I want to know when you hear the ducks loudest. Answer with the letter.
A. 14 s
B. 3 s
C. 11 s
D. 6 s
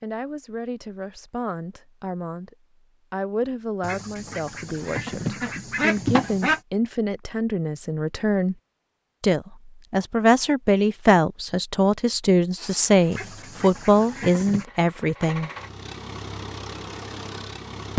D.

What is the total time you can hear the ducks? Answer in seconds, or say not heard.
4 s.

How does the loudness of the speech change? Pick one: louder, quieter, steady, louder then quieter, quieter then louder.
louder.